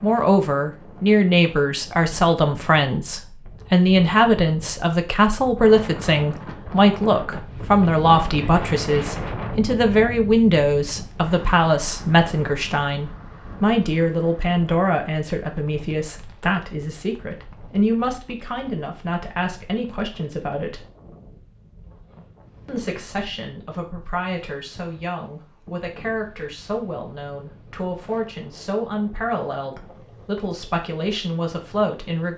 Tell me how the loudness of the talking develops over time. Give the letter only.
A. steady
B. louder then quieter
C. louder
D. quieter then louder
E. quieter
E.